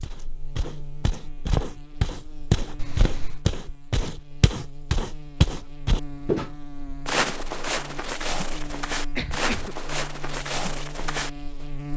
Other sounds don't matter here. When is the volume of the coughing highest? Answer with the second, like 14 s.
9 s.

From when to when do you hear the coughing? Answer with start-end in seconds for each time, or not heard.
2.8-3.4, 8.9-9.8.